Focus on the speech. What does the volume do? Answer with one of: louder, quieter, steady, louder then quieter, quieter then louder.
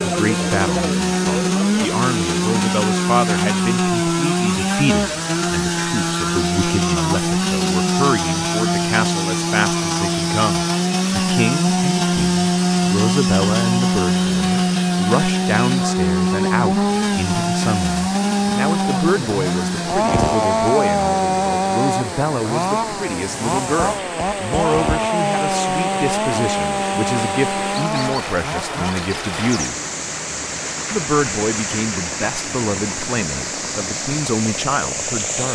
steady.